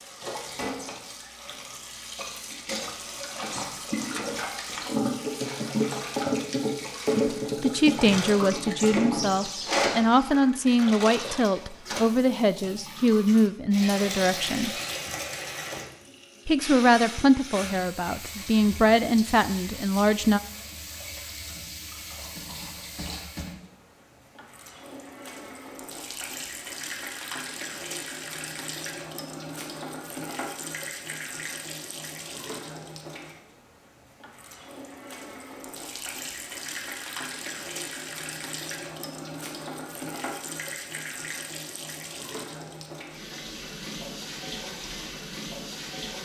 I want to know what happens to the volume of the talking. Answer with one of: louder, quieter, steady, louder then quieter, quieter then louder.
steady.